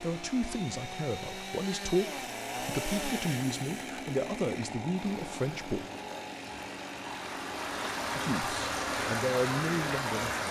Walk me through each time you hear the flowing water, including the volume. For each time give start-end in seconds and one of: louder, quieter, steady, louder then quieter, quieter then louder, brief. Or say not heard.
5.0-10.4 louder.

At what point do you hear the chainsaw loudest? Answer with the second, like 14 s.
3 s.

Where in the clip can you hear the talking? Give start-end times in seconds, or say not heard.
0.0-5.8, 8.2-10.4.